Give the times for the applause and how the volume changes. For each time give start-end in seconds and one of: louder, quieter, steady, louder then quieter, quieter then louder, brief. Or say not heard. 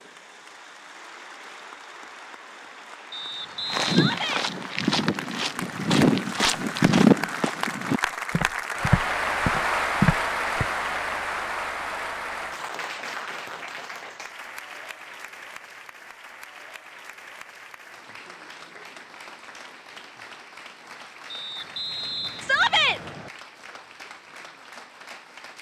0.0-25.5 louder then quieter.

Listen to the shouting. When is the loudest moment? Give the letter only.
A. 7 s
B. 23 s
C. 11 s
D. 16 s
B.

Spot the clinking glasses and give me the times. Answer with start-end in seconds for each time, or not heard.
not heard.